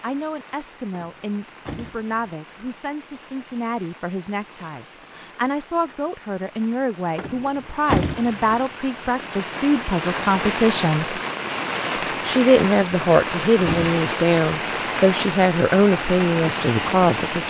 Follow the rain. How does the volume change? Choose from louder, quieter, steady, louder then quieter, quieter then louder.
louder.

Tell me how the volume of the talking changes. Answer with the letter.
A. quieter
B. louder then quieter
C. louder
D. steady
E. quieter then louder
C.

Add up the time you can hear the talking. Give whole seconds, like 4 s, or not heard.
16 s.